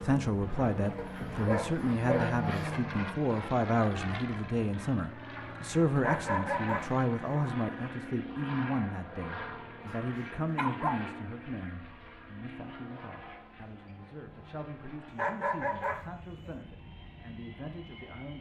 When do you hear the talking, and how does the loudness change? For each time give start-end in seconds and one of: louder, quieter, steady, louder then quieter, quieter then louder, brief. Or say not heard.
0.0-18.3 quieter.